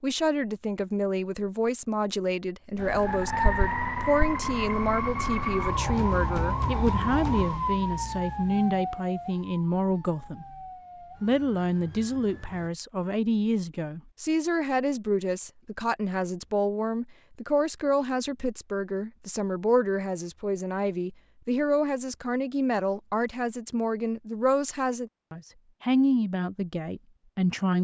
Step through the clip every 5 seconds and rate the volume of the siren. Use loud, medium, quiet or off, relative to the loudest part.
loud, loud, quiet, off, off, off.